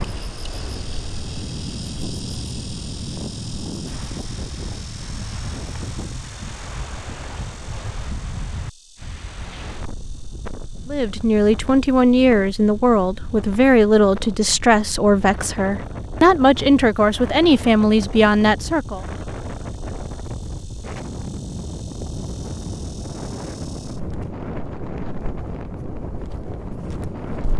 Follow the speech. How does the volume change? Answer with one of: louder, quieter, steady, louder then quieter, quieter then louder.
steady.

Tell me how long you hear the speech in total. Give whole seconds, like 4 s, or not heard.
8 s.